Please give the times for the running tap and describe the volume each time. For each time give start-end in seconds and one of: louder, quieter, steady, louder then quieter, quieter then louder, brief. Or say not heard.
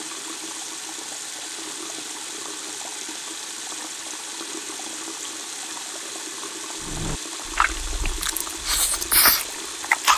0.0-10.1 steady.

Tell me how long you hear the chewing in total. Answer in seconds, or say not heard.
3 s.